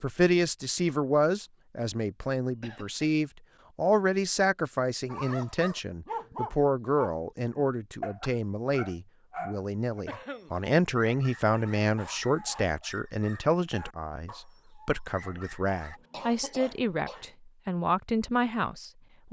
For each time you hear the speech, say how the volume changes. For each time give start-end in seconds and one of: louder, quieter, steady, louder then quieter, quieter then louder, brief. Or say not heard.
0.0-19.2 steady.